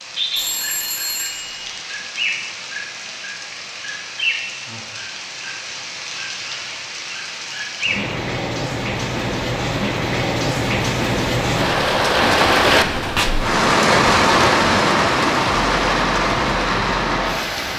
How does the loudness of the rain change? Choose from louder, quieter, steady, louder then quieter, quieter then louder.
louder.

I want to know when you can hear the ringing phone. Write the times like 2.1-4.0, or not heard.
0.3-1.6.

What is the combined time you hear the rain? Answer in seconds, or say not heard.
18 s.